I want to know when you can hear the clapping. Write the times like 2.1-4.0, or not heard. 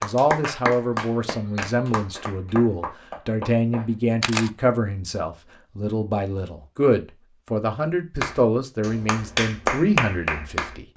0.0-4.0, 8.2-10.9.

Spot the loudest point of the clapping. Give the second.
10 s.